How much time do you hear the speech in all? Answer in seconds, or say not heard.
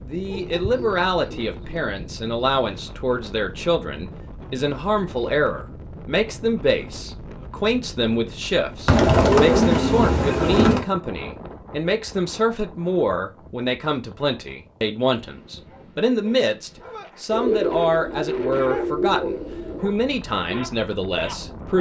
22 s.